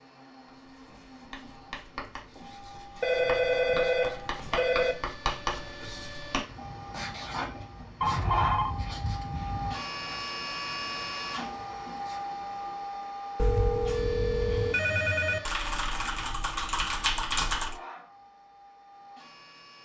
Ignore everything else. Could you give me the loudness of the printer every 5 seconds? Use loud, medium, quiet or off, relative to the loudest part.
quiet, loud, loud, medium.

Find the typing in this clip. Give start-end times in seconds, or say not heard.
15.4-17.8.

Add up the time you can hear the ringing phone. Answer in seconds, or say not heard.
6 s.